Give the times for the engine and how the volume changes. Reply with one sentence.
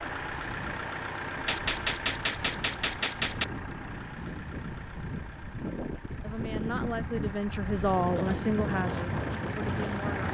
The engine can be heard from 0.0 to 10.2 s, getting quieter then louder.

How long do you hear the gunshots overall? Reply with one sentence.
You can hear the gunshots for 2 seconds altogether.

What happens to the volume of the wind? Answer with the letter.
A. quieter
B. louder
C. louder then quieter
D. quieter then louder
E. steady
B.